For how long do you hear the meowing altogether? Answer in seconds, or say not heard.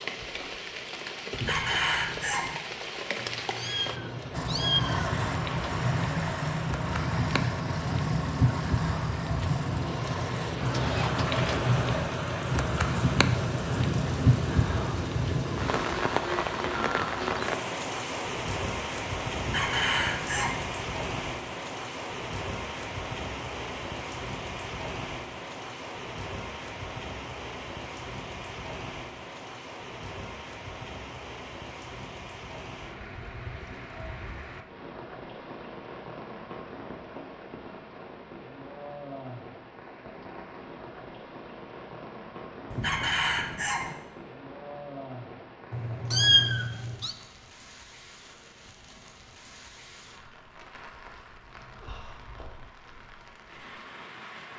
3 s.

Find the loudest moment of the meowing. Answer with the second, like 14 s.
46 s.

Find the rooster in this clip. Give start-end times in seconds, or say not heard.
1.3-2.6, 19.4-20.6, 42.7-44.0.